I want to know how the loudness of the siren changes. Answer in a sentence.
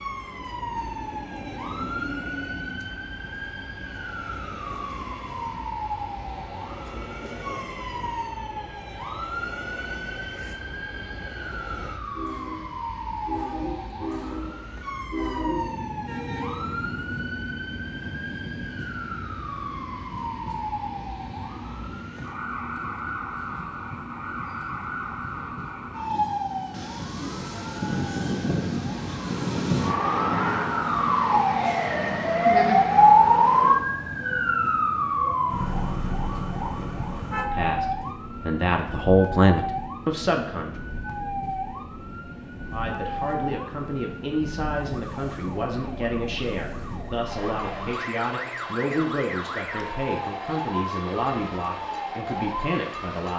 The volume of the siren goes up, then down.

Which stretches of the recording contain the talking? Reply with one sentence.
The talking can be heard from 37.5 to 40.7 s and from 42.7 to 53.3 s.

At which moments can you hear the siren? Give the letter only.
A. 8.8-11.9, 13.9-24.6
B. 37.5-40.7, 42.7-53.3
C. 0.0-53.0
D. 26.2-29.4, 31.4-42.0
C.